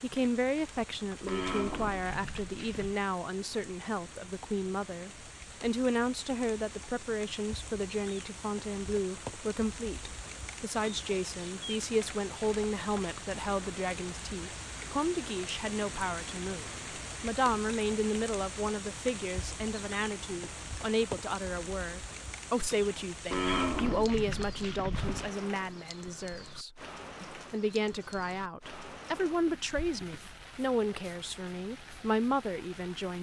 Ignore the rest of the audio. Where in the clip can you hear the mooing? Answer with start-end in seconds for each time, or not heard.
1.2-3.0, 23.3-25.3.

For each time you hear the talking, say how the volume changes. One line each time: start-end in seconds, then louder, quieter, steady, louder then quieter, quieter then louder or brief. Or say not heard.
0.0-33.1 steady.